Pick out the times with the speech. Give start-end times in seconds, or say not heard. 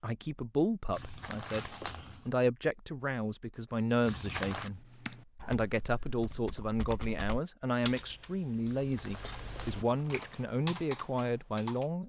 0.0-4.8, 5.5-12.0.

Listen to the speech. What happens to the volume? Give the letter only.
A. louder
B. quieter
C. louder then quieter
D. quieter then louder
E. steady
E.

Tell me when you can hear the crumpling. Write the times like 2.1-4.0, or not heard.
0.9-2.2, 4.0-4.7, 8.7-10.4.